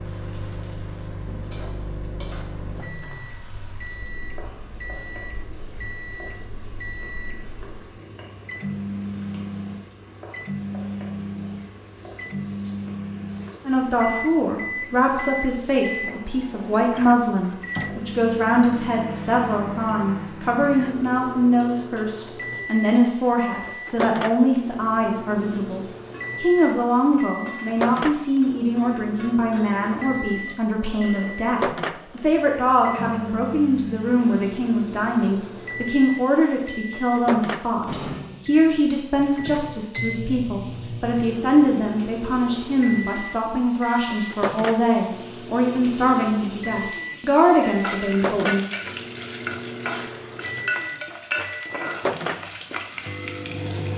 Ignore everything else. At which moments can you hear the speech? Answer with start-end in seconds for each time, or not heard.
13.7-48.6.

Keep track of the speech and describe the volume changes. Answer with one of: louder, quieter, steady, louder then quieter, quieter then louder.
steady.